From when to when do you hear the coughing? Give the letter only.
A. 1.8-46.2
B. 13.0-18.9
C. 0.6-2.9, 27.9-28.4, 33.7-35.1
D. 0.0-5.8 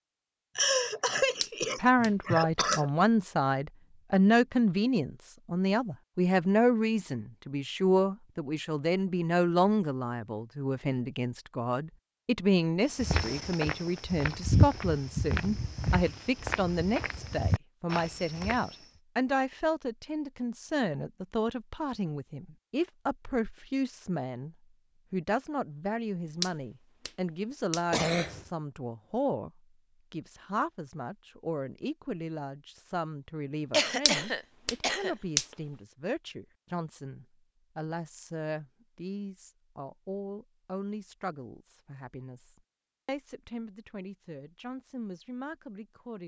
C.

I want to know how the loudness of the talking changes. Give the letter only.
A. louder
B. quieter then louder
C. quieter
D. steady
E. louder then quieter
C.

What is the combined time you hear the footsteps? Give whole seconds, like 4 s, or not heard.
6 s.